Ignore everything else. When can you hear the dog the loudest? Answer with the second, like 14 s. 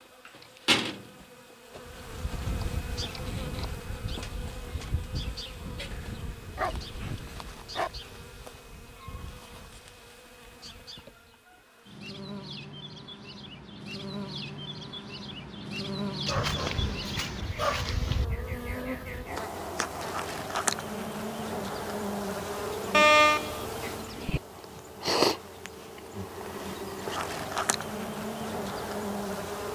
23 s.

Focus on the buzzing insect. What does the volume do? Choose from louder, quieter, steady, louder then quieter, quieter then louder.
quieter then louder.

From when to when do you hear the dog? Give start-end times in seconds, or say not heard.
5.9-7.9, 16.2-18.2, 22.9-24.4.